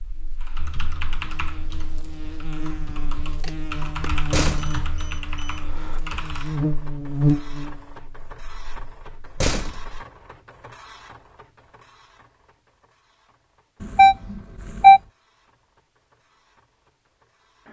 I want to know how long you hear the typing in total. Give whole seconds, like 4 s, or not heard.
6 s.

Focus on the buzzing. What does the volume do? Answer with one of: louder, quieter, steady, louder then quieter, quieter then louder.
louder.